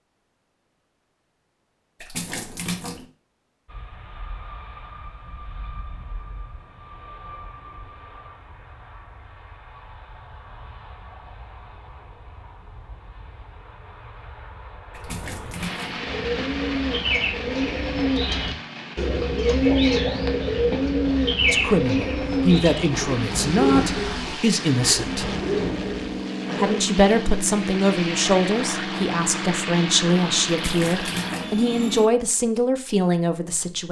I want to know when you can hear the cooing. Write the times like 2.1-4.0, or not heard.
16.0-26.8.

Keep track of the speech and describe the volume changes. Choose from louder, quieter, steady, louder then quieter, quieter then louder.
steady.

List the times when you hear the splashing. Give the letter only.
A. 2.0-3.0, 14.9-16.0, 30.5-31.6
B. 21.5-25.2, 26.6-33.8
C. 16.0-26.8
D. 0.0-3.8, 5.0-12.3
A.